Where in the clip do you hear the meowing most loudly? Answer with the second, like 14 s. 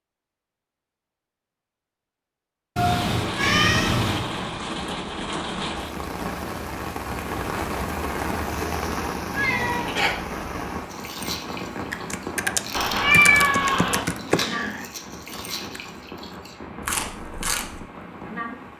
13 s.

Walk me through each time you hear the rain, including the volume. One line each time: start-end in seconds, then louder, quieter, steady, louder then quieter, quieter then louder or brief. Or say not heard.
2.8-18.7 quieter.